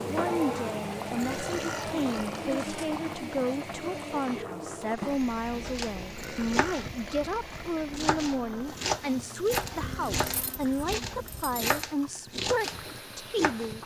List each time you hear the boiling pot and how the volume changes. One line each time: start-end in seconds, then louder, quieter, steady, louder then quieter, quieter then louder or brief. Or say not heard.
0.0-13.8 quieter.